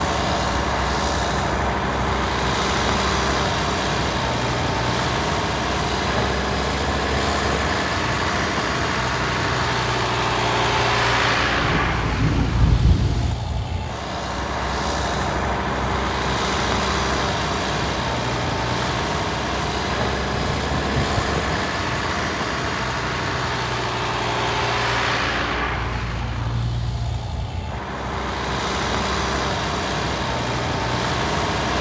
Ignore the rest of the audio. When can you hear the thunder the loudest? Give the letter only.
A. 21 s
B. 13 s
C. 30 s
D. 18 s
B.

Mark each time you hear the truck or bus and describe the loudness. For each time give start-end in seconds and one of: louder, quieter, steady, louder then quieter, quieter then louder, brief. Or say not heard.
0.0-31.7 steady.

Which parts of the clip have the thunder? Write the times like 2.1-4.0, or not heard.
11.6-13.3, 20.1-21.4.